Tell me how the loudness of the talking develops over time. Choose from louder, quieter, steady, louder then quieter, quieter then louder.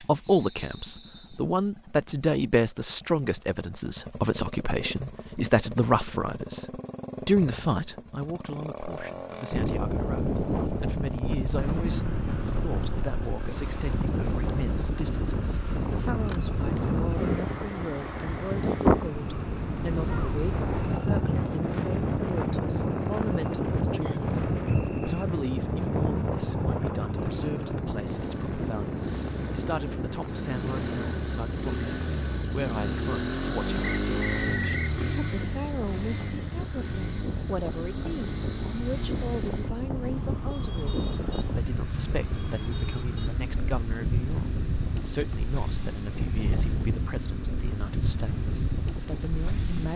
quieter.